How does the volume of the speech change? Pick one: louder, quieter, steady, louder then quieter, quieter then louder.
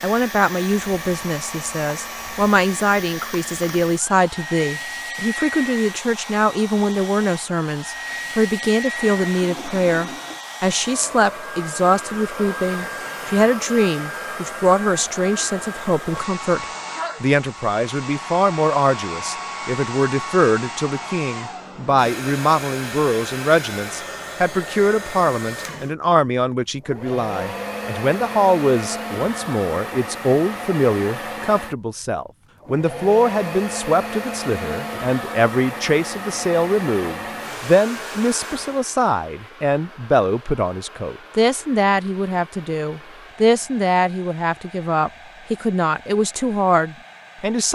steady.